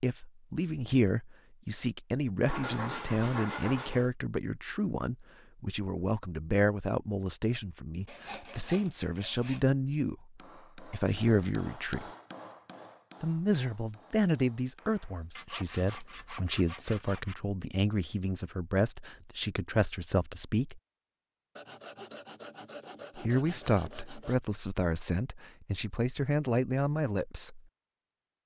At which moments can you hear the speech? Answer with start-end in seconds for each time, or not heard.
0.0-12.1, 13.2-20.8, 23.1-27.6.